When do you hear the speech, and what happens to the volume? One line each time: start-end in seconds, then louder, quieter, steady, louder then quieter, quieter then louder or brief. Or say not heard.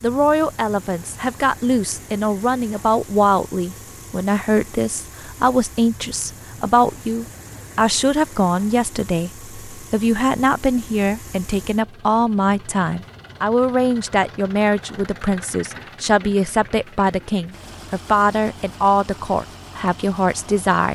0.0-20.9 steady.